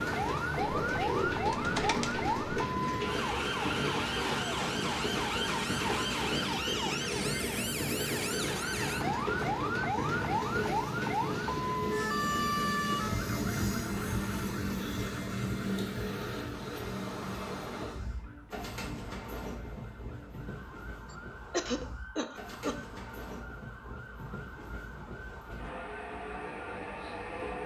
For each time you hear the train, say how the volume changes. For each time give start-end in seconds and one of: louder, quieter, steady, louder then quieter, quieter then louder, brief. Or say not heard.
0.0-27.6 quieter.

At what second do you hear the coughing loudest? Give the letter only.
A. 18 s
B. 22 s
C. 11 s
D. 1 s
B.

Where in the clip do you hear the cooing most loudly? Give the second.
1 s.